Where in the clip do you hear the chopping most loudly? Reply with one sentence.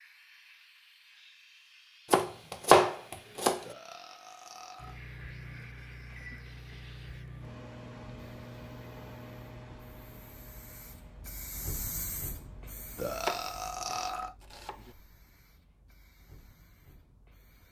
The volume of the chopping peaks at 3 seconds.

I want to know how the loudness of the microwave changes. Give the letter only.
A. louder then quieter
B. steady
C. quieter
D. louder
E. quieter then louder
C.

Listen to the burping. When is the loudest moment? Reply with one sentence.
The loudest moment of the burping is at 13 seconds.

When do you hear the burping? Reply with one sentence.
The burping can be heard from 3.6 to 5.0 s and from 12.9 to 14.3 s.